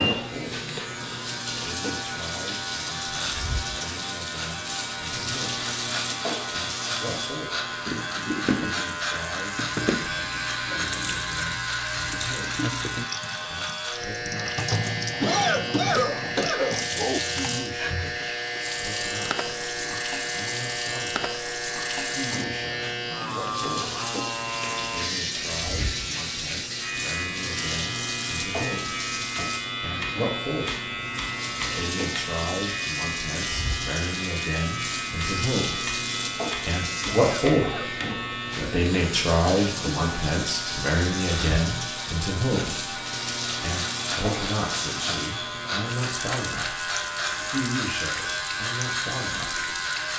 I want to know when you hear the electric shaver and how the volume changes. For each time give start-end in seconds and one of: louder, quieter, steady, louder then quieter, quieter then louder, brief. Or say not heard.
0.0-50.1 steady.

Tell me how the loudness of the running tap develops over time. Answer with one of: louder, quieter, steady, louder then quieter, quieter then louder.
steady.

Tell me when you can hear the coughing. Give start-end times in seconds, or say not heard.
15.2-17.2, 37.0-37.9.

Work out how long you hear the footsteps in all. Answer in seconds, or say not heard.
not heard.